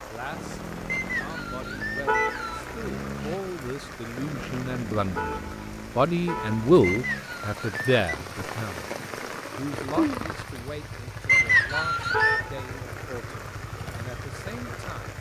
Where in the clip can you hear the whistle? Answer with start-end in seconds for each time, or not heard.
0.8-2.7, 6.8-8.0, 11.2-12.4.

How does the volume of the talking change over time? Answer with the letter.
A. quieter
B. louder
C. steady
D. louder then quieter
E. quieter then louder
D.